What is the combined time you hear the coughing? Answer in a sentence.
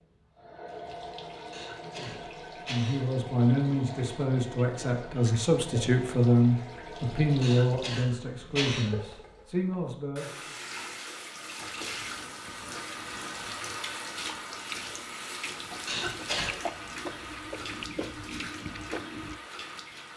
The coughing can be heard for 4 seconds in total.